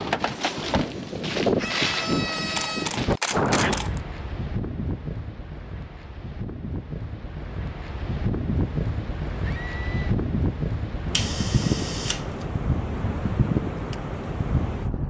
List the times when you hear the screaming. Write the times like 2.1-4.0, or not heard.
1.6-3.0, 9.4-10.1.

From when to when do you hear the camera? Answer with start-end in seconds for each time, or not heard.
2.5-4.0, 11.1-12.2.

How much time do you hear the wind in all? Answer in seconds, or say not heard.
15 s.